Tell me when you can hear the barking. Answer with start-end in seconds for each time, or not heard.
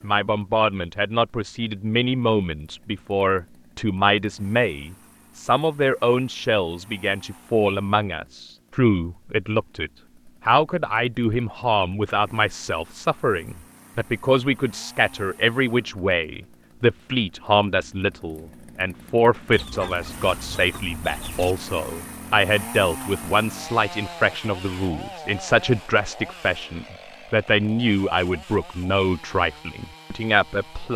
not heard.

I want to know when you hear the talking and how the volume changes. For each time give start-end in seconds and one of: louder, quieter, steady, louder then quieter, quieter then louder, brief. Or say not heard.
0.0-30.9 steady.